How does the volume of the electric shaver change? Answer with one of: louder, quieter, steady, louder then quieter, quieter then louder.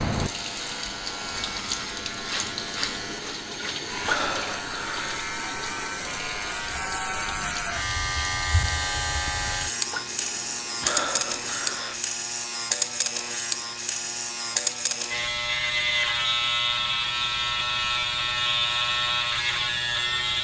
louder.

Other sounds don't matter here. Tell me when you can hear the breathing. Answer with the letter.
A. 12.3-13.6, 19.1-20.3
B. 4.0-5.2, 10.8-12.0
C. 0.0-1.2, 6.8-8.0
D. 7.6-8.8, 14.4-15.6
B.